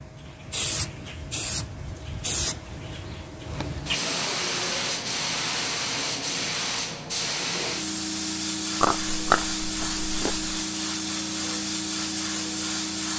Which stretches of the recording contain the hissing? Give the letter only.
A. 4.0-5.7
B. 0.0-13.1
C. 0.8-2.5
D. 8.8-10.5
B.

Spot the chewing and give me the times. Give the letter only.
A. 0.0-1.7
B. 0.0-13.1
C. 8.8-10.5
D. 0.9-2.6
C.